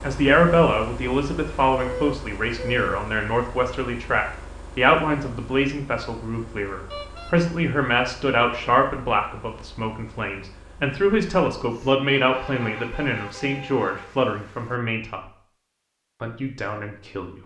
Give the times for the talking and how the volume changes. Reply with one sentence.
You can hear the talking from 0.0 to 15.2 s, at a steady volume; and briefly from 16.2 to 17.4 s.